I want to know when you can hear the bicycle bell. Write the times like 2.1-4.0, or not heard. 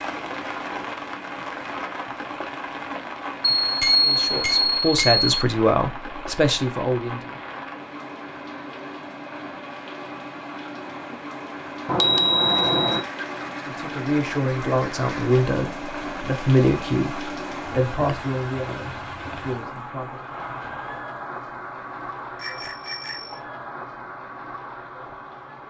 3.6-5.3, 11.8-13.1, 22.4-23.4.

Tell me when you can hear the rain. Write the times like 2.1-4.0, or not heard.
0.0-25.6.